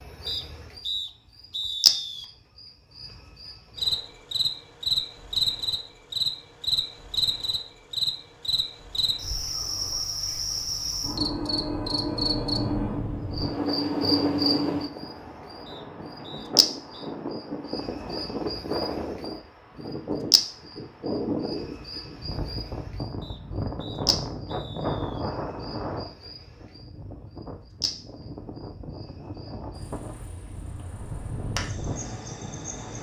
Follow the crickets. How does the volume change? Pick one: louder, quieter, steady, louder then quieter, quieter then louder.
quieter.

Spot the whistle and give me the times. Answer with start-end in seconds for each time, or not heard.
0.2-2.2, 15.7-17.1, 23.2-25.2.